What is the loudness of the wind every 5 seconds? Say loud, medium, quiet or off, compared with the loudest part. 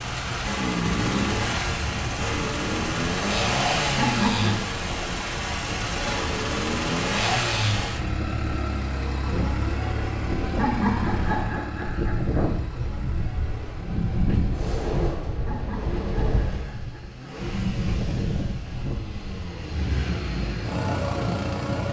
medium, medium, loud, loud, loud.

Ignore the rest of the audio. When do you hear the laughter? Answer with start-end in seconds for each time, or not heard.
4.0-4.6, 10.6-12.5, 15.4-17.4.